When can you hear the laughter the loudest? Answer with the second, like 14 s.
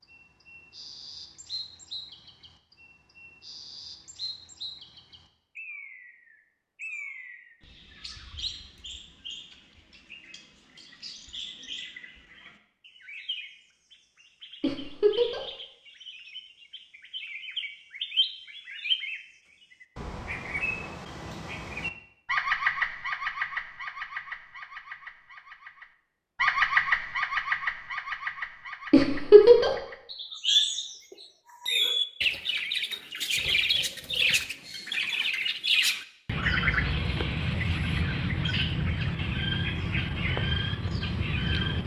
29 s.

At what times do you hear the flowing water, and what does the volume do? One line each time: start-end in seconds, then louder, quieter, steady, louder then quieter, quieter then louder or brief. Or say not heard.
not heard.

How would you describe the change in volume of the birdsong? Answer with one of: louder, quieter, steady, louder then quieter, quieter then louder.
louder.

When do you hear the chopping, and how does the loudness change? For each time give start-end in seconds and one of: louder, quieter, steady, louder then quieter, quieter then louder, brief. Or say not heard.
not heard.